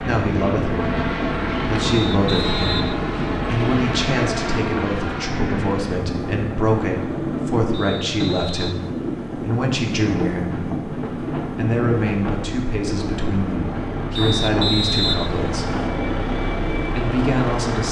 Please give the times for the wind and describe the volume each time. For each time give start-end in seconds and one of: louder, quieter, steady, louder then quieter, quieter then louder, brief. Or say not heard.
0.1-17.8 steady.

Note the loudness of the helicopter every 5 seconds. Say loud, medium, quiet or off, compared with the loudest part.
loud, medium, medium, loud.